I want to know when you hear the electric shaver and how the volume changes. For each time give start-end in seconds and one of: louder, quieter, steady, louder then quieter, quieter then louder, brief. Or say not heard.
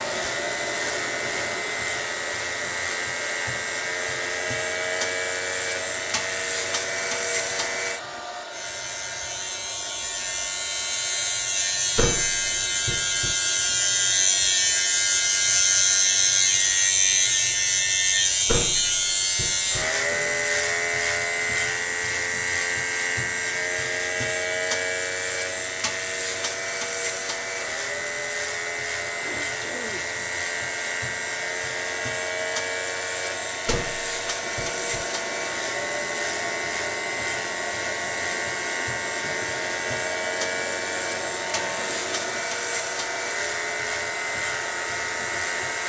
0.0-45.8 louder then quieter.